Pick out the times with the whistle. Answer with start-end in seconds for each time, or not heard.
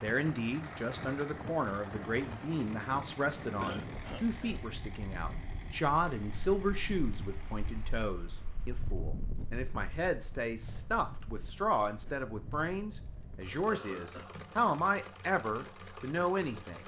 not heard.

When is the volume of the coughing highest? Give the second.
4 s.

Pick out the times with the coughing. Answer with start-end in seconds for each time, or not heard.
3.6-4.6, 13.7-14.5.